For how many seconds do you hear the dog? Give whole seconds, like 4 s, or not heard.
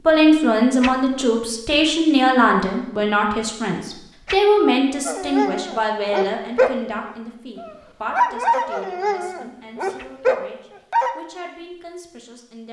6 s.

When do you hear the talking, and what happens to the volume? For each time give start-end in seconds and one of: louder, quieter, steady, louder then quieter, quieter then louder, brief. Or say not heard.
0.1-12.6 quieter.